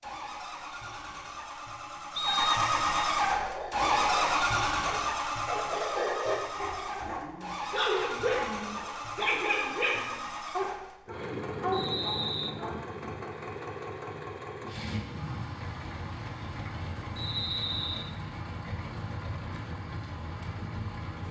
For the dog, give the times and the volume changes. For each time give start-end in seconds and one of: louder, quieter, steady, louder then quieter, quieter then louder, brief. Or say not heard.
3.2-12.8 louder.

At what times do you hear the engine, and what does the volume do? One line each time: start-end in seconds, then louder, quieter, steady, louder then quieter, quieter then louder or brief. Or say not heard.
0.0-21.2 quieter.